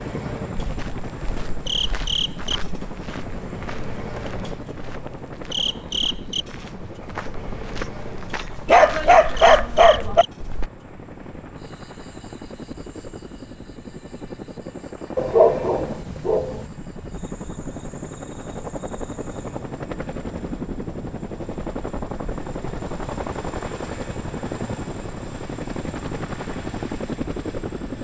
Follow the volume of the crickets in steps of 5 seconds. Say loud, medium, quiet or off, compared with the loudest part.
loud, loud, quiet, quiet, off, off.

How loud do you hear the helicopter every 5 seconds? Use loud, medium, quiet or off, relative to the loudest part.
medium, medium, medium, loud, loud, loud.